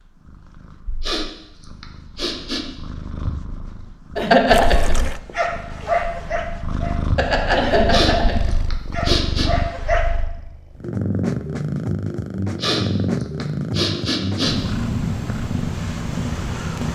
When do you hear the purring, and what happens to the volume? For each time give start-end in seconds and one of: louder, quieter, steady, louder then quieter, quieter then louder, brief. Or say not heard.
0.0-16.8 louder.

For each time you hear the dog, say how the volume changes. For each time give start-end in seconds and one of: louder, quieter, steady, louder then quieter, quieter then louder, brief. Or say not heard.
4.2-10.1 quieter.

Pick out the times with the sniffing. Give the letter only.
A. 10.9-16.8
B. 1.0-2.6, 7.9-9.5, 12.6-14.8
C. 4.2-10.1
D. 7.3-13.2
B.